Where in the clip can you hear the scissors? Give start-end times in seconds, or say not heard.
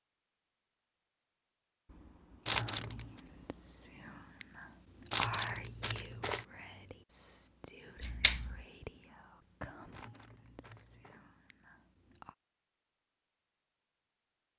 1.9-3.8, 8.0-8.7.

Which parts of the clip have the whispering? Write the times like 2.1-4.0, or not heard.
2.5-12.3.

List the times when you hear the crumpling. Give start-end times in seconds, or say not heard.
2.5-3.2, 5.1-6.5, 9.9-11.2.